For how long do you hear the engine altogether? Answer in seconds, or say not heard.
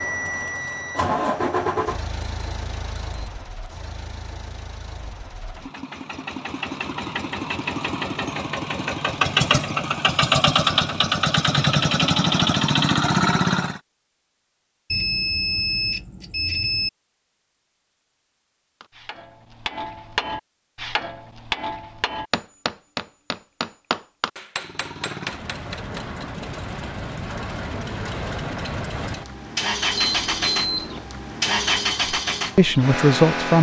23 s.